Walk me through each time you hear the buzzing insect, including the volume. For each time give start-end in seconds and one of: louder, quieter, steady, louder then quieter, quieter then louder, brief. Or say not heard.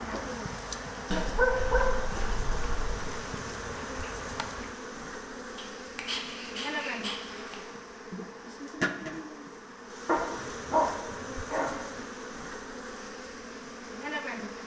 0.0-14.6 steady.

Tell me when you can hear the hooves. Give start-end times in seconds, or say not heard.
0.0-4.8.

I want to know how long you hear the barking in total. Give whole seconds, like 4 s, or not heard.
6 s.